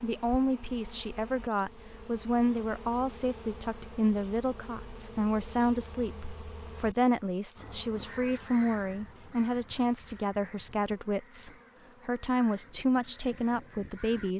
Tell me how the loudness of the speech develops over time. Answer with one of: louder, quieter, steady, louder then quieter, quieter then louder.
steady.